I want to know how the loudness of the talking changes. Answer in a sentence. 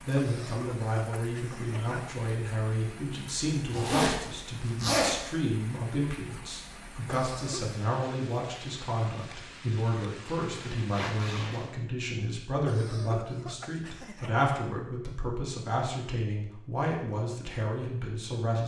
The loudness of the talking stays about the same.